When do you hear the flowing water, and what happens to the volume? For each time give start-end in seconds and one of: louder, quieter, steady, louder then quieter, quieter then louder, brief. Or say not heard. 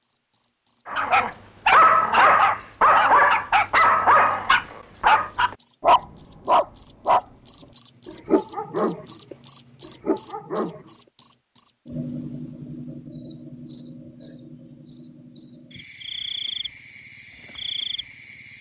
not heard.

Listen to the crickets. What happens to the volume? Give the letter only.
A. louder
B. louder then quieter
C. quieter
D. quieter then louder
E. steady
B.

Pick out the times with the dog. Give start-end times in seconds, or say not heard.
0.9-7.2, 8.1-10.9.